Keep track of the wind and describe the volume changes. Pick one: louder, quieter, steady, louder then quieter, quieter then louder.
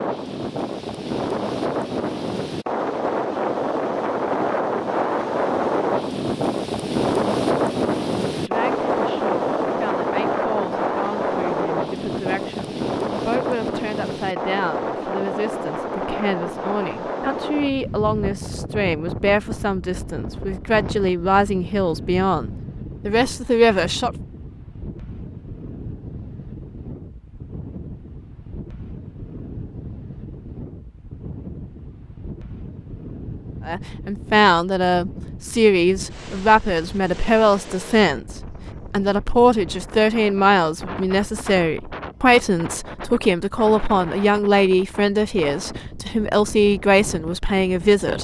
quieter.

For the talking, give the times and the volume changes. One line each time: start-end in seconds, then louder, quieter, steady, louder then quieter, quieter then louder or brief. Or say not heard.
8.3-24.1 louder
33.6-48.1 steady.